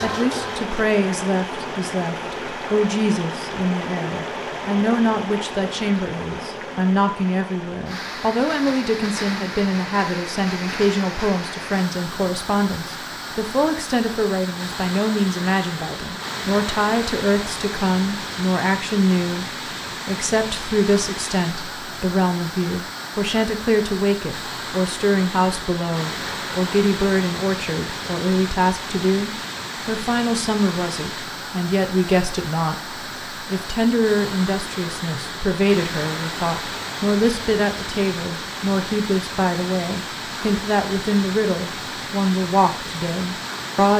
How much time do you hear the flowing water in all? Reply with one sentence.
You can hear the flowing water for 44 seconds altogether.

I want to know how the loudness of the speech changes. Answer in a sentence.
The loudness of the speech stays about the same.